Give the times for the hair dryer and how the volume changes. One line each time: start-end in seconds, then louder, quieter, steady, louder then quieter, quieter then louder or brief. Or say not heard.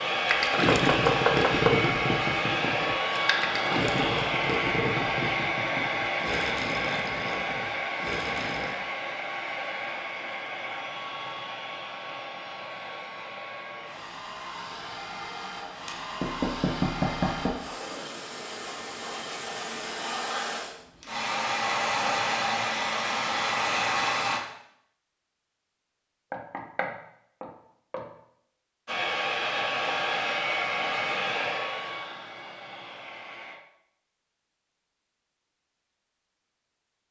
0.0-24.4 quieter then louder
28.9-33.6 quieter.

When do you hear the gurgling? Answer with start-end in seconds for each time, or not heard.
0.2-8.8.